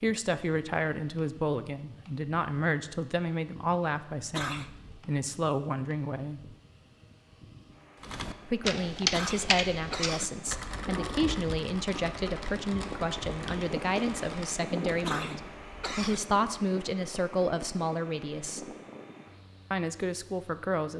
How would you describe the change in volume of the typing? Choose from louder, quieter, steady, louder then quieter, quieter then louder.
quieter.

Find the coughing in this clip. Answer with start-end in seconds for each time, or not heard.
4.3-5.0, 9.1-10.3, 15.0-16.2.